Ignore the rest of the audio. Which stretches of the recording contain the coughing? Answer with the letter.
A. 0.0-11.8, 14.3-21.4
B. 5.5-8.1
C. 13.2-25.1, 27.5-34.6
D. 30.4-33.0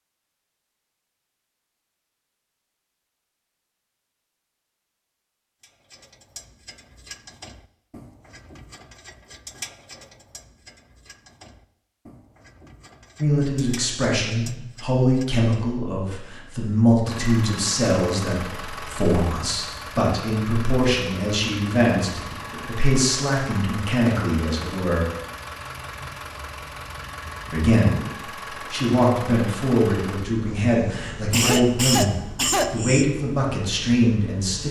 D.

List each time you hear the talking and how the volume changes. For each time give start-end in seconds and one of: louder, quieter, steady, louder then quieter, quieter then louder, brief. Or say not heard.
13.2-25.1 steady
27.5-34.6 steady.